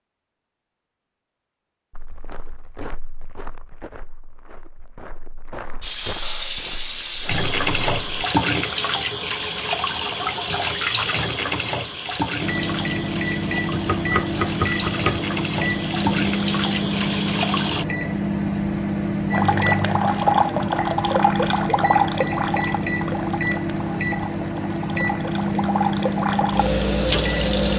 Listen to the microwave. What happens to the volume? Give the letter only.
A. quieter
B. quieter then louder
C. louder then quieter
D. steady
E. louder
D.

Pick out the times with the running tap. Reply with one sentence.
You can hear the running tap from 5.8 to 17.9 s and from 19.3 to 27.7 s.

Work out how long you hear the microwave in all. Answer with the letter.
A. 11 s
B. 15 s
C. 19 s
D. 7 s
B.